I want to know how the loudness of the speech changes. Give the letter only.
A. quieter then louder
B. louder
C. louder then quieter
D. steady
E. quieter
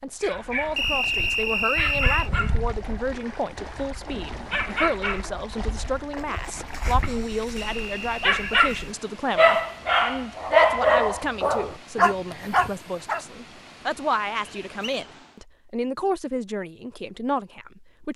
D.